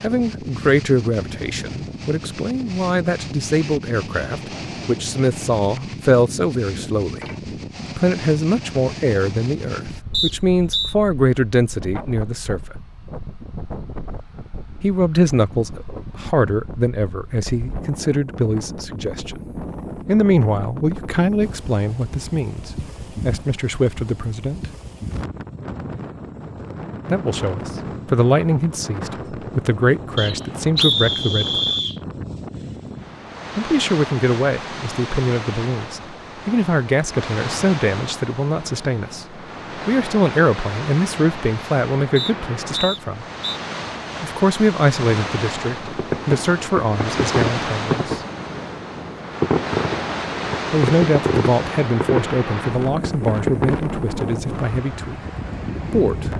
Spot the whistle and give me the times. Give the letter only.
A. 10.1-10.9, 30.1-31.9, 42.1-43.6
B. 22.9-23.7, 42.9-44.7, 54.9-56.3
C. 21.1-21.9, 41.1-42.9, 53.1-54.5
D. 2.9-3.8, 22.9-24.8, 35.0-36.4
A.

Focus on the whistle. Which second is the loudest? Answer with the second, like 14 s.
31 s.